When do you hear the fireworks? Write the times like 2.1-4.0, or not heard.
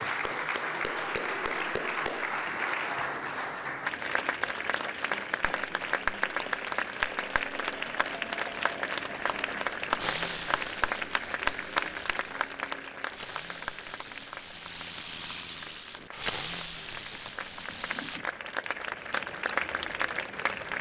9.9-18.2.